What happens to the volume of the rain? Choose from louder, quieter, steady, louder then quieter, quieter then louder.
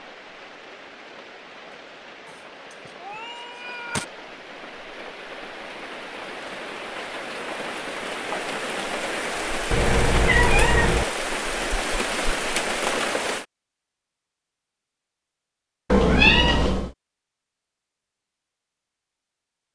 louder.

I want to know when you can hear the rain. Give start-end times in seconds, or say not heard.
0.0-13.4.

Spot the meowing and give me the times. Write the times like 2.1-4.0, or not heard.
2.2-4.0, 9.7-11.1, 15.9-16.9.